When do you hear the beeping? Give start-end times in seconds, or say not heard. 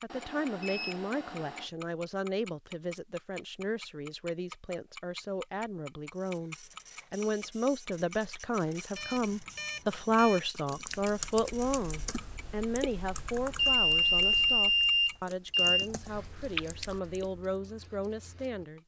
0.1-1.7, 8.9-10.4, 13.6-15.9.